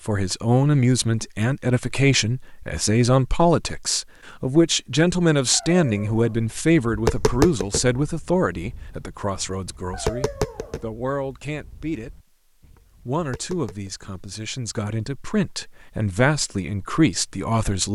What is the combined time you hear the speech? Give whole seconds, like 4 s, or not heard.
17 s.